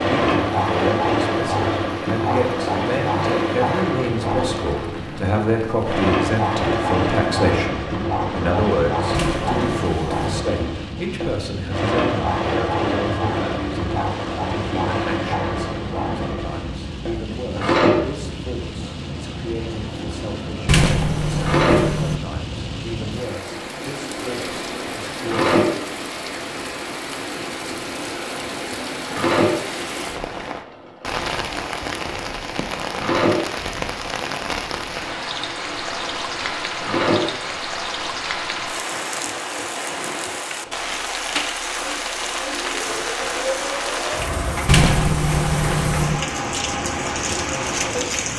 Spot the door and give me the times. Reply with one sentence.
You can hear the door from 9.1 to 10.4 s, from 20.6 to 22.2 s and from 44.6 to 46.2 s.